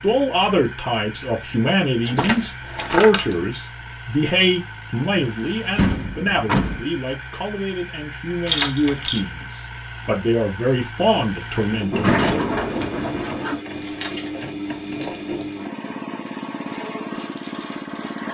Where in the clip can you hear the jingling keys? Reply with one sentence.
You can hear the jingling keys from 2.0 to 3.4 s, from 8.4 to 9.2 s and from 13.7 to 15.6 s.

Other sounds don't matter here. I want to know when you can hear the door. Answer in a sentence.
You can hear the door from 5.8 to 6.8 s and from 11.9 to 13.6 s.